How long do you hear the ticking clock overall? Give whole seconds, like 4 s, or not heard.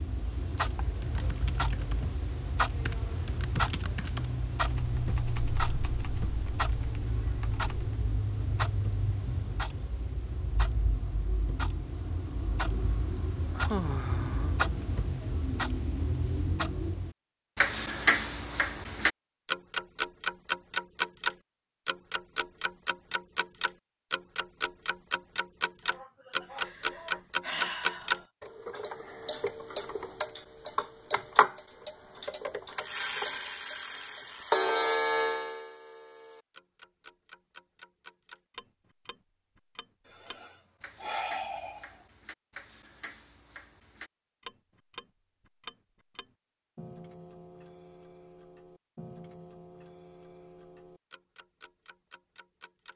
53 s.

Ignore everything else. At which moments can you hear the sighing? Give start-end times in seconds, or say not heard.
13.6-14.6, 25.9-28.2, 40.0-42.0.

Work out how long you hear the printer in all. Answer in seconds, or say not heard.
not heard.